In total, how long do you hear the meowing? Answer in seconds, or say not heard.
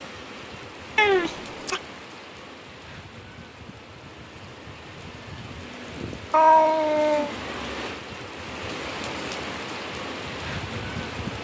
2 s.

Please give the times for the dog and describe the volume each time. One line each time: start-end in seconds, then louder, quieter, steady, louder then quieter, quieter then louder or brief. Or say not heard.
not heard.